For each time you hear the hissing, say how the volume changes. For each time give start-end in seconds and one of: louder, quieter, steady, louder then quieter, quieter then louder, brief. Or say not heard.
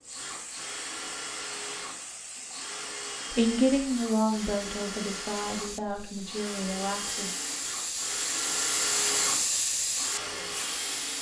0.0-11.1 louder.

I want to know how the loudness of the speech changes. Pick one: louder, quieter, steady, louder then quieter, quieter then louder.
quieter.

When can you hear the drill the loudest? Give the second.
9 s.